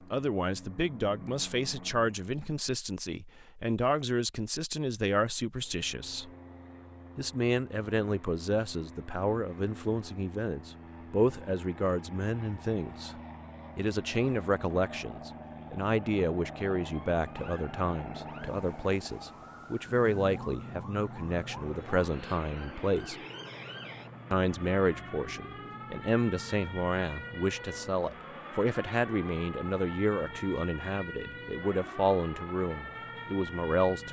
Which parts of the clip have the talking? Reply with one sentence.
You can hear the talking from 0.1 to 6.3 s, from 7.2 to 13.2 s, from 13.8 to 23.1 s and from 24.3 to 34.0 s.